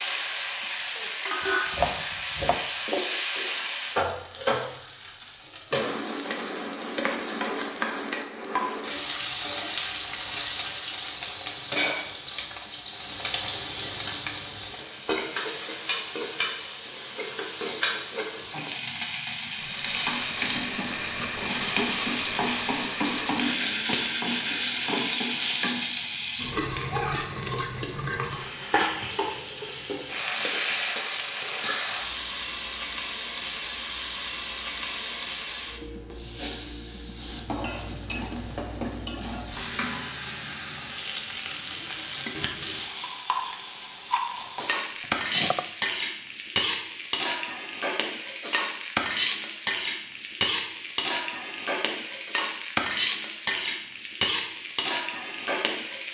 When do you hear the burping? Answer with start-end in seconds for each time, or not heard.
not heard.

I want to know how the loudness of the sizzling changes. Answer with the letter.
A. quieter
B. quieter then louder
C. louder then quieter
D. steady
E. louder
D.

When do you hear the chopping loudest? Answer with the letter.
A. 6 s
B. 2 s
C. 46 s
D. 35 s
B.